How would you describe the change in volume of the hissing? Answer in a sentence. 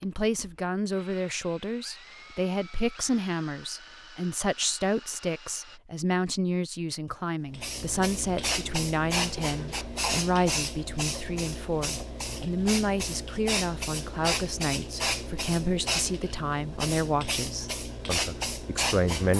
The volume of the hissing stays about the same.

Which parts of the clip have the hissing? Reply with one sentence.
You can hear the hissing from 7.5 to 19.3 s.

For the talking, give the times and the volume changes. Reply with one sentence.
You can hear the talking from 0.0 to 19.3 s, at a steady volume.